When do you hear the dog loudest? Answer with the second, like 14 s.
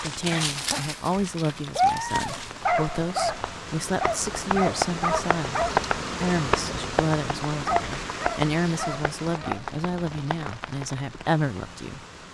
2 s.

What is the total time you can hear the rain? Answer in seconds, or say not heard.
12 s.